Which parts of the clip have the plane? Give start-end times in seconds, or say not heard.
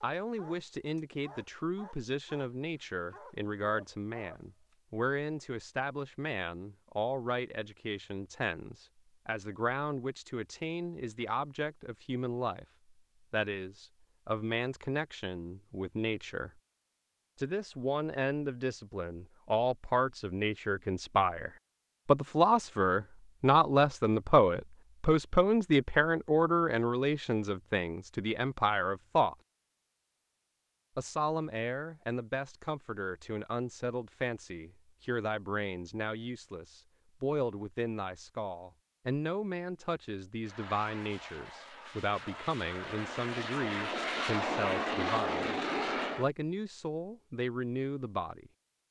40.4-46.3.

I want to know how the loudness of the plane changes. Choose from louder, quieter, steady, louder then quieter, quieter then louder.
louder.